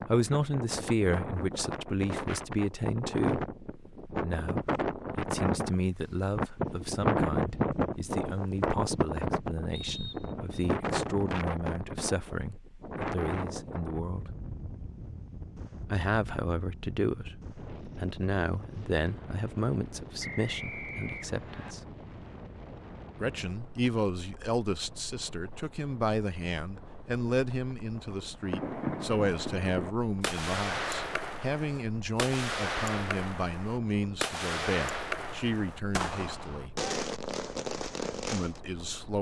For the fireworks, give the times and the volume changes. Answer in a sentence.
The fireworks can be heard from 28.4 to 38.6 s, at a steady volume.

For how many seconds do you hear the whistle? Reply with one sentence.
The whistle can be heard for 2 seconds in total.